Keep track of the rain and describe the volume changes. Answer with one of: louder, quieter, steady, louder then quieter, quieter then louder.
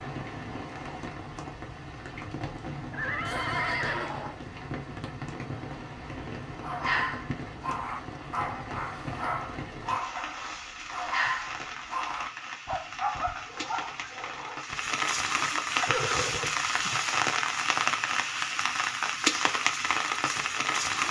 louder.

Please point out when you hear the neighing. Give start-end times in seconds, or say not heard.
2.9-4.4, 15.8-16.9.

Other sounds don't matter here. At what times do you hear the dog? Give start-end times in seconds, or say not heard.
6.6-14.9.